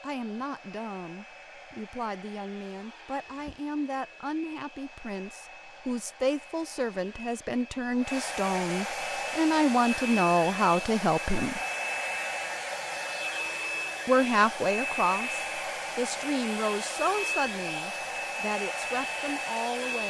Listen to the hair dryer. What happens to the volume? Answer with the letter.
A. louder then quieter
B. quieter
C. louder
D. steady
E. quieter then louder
C.